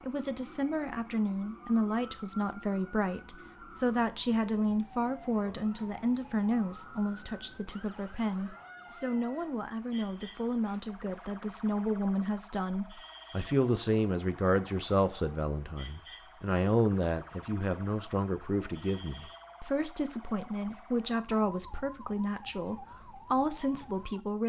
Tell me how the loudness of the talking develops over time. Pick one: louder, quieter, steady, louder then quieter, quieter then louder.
steady.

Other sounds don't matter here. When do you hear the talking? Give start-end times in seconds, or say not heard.
0.0-24.4.